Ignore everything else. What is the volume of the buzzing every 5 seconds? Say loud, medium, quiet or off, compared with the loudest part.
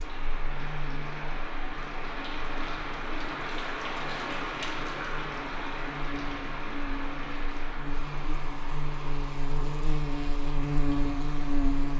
quiet, medium, loud.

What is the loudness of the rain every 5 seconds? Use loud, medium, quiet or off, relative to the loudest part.
loud, loud, medium.